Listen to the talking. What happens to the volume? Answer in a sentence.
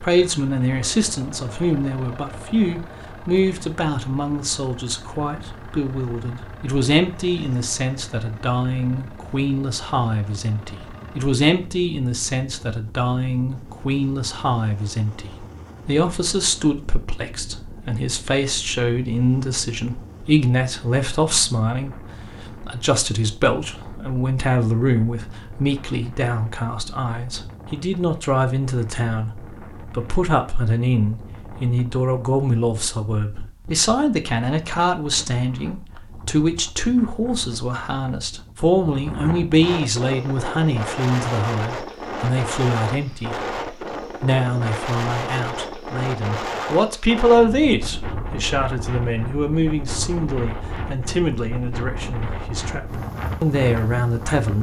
The loudness of the talking stays about the same.